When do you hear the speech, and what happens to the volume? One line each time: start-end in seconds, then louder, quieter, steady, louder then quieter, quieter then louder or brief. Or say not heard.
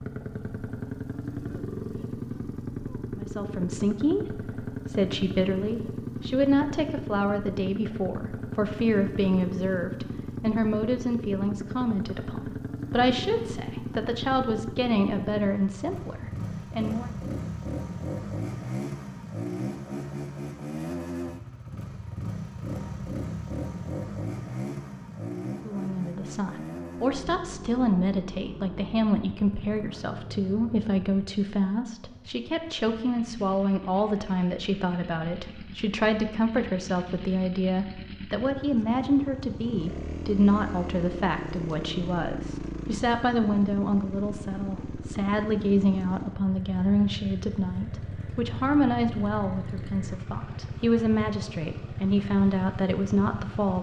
3.1-17.1 steady
25.6-53.7 steady.